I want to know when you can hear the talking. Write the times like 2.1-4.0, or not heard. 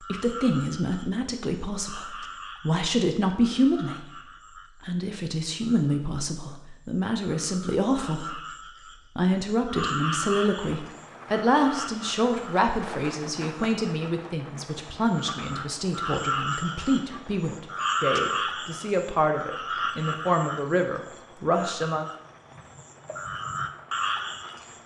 0.0-4.2, 4.8-8.6, 9.2-22.1.